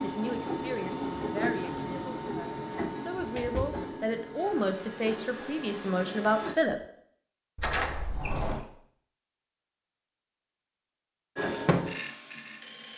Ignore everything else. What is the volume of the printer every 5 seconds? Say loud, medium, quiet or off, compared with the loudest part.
loud, medium, loud.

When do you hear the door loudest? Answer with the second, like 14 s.
8 s.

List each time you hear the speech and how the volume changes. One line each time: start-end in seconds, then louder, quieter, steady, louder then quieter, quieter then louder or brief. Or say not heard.
0.0-6.8 quieter then louder.